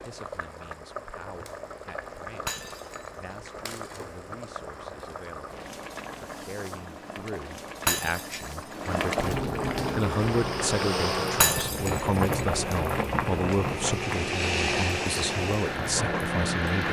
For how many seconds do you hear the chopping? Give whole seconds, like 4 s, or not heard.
not heard.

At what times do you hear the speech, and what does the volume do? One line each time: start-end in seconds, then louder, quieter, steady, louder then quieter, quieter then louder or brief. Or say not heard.
0.0-16.8 louder.